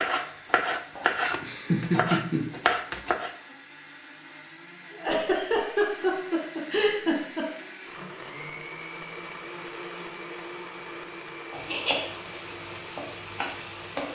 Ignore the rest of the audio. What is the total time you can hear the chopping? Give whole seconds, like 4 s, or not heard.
3 s.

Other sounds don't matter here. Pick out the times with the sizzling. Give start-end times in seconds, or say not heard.
11.5-14.1.